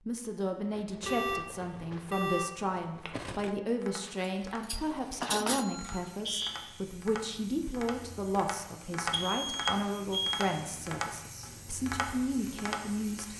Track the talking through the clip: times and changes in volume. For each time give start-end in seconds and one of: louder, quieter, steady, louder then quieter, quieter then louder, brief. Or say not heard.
0.1-13.3 steady.